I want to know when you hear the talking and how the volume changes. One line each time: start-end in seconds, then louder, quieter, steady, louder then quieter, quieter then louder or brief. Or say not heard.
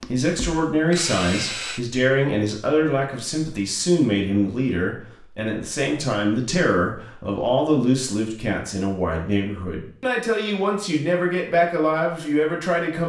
0.0-13.0 steady.